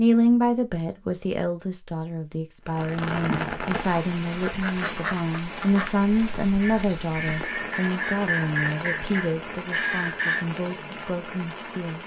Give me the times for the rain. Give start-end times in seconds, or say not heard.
2.6-12.0.